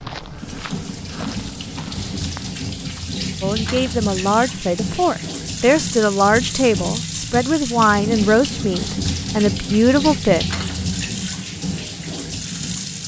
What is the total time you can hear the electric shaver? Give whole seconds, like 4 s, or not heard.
not heard.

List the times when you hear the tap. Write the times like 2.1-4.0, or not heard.
0.1-13.0.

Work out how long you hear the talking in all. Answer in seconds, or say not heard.
7 s.